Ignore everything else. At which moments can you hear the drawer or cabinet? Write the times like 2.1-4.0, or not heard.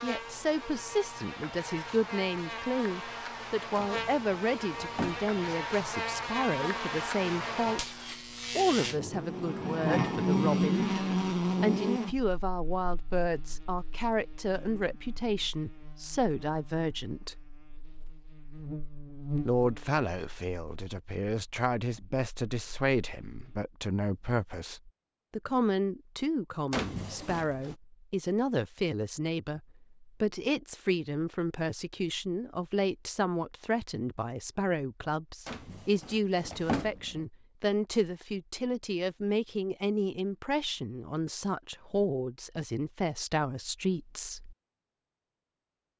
3.8-5.3, 26.7-27.8, 35.5-37.2.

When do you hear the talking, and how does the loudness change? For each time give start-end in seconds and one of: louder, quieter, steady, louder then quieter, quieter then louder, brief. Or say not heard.
0.0-8.0 steady
8.6-17.4 steady
19.4-44.5 steady.